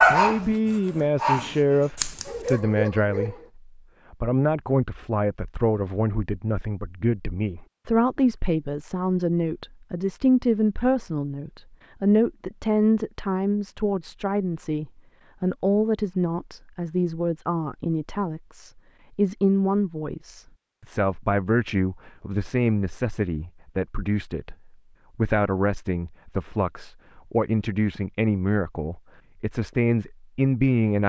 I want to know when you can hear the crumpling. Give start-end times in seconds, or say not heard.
1.9-2.6.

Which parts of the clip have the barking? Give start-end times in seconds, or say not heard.
0.0-3.5.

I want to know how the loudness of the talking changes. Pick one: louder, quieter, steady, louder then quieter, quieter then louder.
steady.